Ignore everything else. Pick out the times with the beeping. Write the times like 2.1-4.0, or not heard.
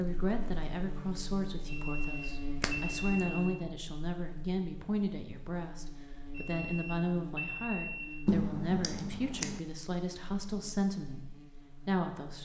1.6-3.5, 6.3-8.1.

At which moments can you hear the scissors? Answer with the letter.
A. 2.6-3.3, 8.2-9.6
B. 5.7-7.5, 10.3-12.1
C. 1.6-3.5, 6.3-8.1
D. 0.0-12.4
A.